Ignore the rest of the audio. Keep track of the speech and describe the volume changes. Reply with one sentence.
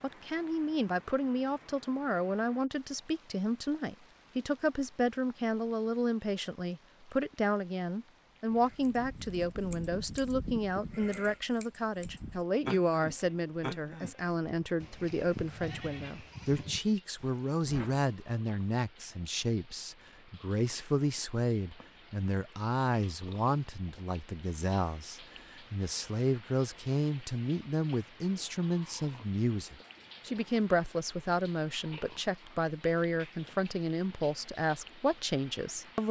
The loudness of the speech stays about the same.